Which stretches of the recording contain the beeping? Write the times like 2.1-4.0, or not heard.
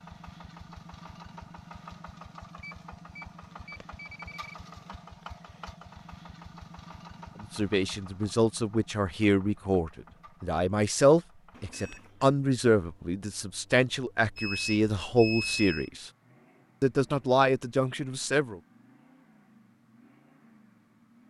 2.5-4.5, 11.5-12.3, 14.3-15.9.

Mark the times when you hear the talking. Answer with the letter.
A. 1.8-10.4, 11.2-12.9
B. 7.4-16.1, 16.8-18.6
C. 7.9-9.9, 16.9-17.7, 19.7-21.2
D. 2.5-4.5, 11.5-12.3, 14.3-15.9
B.